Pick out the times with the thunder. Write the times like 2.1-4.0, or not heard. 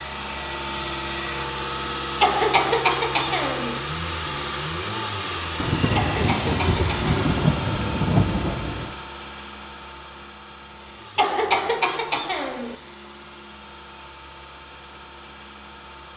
5.6-8.9.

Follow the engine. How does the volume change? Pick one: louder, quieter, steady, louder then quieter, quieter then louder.
quieter.